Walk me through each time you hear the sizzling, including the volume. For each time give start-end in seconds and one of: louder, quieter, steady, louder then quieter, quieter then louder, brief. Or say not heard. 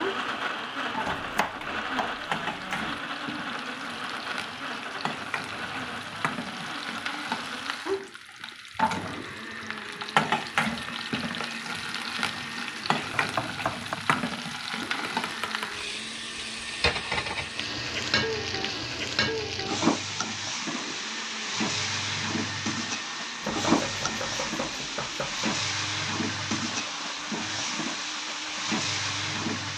0.0-29.7 louder.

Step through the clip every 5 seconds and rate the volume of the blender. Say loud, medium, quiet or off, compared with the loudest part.
loud, medium, medium, medium, medium, medium.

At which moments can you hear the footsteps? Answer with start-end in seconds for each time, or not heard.
not heard.